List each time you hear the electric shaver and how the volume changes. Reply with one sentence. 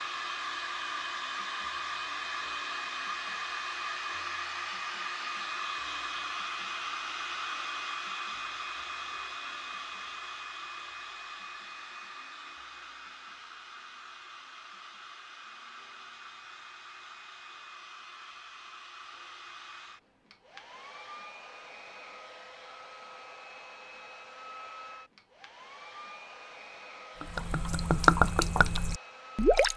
You can't hear the electric shaver here.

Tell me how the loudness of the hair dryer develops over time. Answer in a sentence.
The loudness of the hair dryer goes down.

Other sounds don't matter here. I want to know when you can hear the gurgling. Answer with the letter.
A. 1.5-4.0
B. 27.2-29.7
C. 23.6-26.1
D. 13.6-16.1
B.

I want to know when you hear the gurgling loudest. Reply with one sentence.
The loudest moment of the gurgling is at 28 seconds.